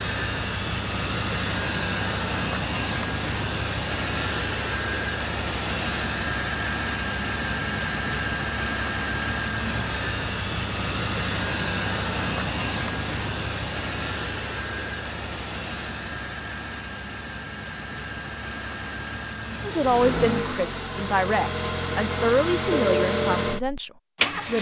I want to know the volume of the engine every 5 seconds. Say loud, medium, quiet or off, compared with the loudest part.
loud, loud, loud, medium, loud.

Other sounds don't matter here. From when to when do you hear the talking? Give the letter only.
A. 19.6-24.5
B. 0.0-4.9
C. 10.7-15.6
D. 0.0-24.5
A.